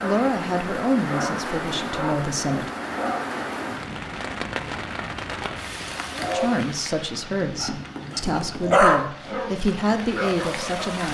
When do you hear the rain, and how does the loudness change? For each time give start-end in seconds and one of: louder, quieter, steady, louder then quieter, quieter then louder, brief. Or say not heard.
0.0-11.0 quieter.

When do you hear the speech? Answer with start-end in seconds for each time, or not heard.
0.0-2.7, 6.3-11.0.